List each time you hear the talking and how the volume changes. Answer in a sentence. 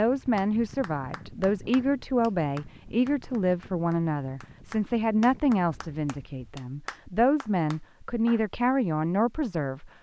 The talking can be heard from 0.0 to 9.9 s, at a steady volume.